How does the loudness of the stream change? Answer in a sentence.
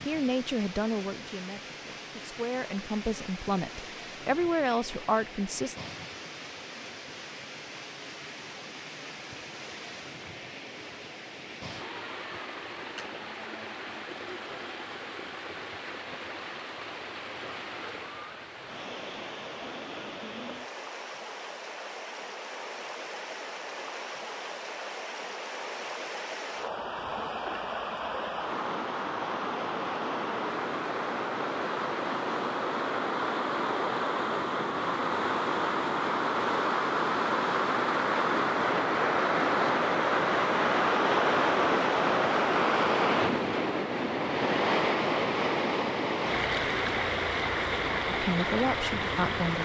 The loudness of the stream goes up.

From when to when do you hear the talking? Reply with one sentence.
You can hear the talking from 0.1 to 5.8 s and from 48.0 to 49.6 s.